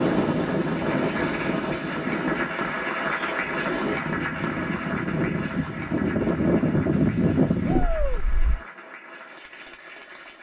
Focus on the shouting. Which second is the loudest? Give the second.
8 s.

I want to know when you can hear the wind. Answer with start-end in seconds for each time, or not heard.
0.0-8.6.